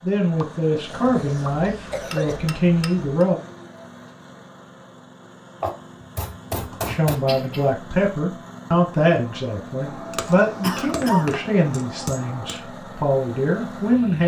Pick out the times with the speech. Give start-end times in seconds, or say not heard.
0.0-3.4, 6.8-14.2.